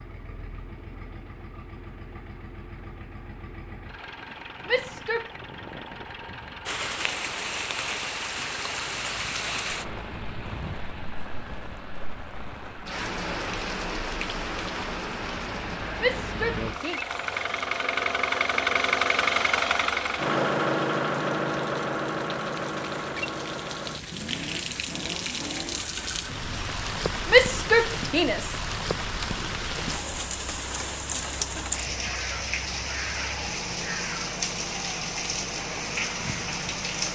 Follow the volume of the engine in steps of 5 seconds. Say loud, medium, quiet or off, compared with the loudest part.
quiet, quiet, quiet, loud, loud, quiet, quiet, quiet.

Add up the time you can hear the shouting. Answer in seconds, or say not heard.
3 s.